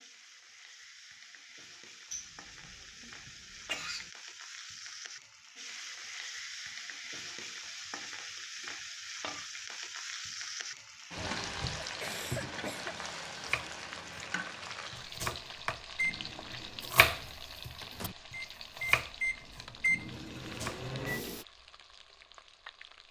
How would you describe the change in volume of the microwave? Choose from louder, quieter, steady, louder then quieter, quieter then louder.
louder then quieter.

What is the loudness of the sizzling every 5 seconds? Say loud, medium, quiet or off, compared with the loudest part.
medium, loud, loud, medium, quiet.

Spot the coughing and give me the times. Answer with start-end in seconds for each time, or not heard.
2.1-4.1, 11.8-12.9.